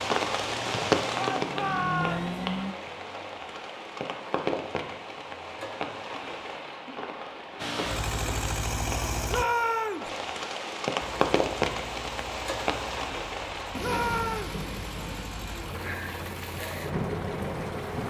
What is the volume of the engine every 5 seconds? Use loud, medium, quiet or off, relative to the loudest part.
loud, loud, quiet, medium.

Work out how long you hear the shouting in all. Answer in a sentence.
You can hear the shouting for 3 seconds altogether.